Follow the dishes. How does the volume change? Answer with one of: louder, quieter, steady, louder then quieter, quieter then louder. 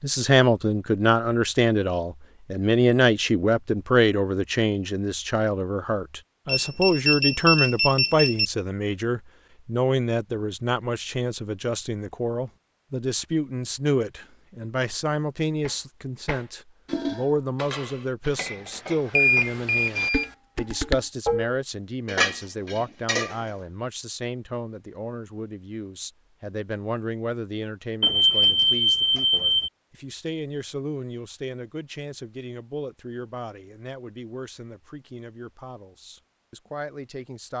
quieter then louder.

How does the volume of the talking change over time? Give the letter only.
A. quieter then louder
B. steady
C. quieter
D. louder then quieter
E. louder
C.